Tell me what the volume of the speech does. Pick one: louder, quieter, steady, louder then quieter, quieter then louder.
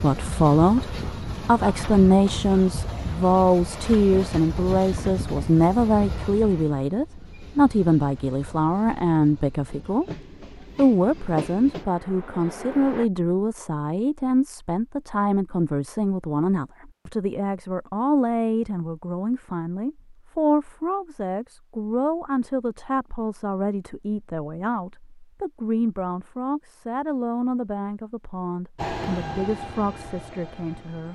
quieter.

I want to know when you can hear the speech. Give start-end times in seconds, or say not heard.
0.0-31.1.